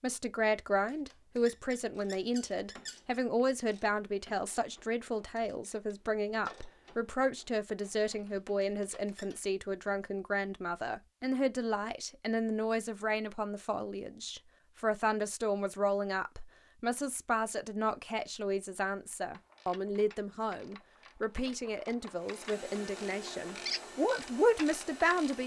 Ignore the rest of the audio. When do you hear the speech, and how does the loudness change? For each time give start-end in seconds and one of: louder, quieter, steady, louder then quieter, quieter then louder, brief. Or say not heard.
0.0-25.4 steady.